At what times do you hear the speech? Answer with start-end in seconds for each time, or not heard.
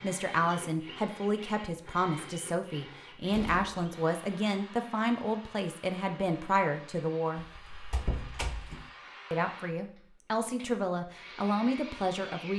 0.0-7.5, 9.3-12.5.